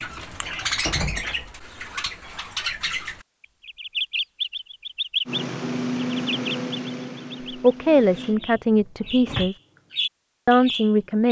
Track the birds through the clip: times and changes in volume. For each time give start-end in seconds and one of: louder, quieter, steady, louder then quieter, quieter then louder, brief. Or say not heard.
0.0-11.2 quieter then louder.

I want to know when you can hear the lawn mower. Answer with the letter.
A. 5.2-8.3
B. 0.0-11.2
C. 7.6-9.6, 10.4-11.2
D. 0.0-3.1
A.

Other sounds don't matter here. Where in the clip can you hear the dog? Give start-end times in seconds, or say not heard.
not heard.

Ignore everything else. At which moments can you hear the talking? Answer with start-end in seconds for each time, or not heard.
7.6-9.6, 10.4-11.2.